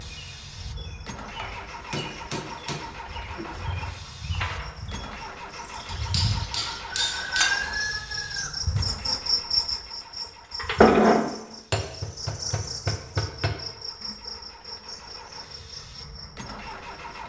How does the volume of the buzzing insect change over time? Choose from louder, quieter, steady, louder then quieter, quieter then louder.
louder then quieter.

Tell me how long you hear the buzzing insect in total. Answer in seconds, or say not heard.
17 s.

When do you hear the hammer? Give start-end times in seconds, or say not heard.
1.9-3.5, 5.8-7.5, 11.7-13.6.